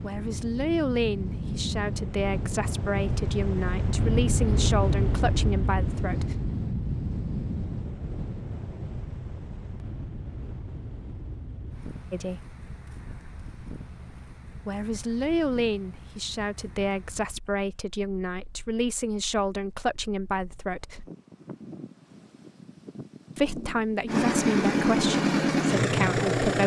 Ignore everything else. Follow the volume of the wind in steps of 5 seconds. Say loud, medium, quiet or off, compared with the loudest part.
loud, loud, quiet, quiet, quiet, off.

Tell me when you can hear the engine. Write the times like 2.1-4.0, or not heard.
24.1-26.6.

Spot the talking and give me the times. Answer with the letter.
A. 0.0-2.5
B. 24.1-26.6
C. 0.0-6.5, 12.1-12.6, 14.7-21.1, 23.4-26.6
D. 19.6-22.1
C.